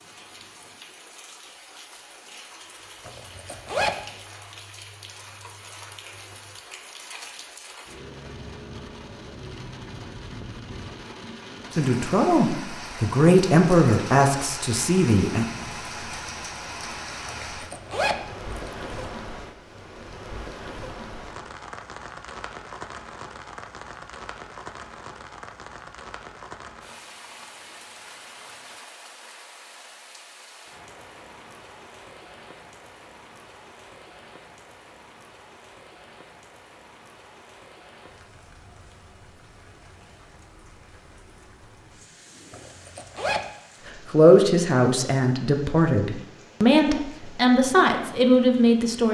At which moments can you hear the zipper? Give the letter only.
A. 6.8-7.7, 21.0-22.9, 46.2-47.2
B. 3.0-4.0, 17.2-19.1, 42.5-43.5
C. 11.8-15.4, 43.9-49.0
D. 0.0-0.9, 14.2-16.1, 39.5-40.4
B.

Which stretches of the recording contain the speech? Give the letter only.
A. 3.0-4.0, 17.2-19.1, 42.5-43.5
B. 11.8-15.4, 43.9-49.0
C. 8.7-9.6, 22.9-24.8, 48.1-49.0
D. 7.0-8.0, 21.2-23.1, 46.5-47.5
B.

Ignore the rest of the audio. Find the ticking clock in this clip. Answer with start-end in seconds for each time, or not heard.
not heard.